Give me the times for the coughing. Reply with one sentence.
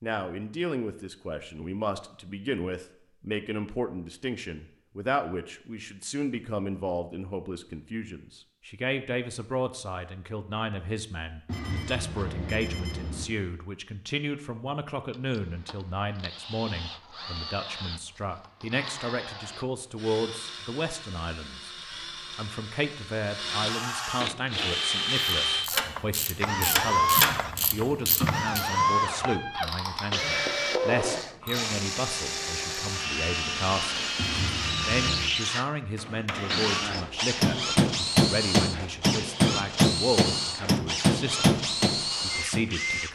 You can't hear the coughing here.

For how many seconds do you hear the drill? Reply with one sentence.
You can hear the drill for 28 seconds altogether.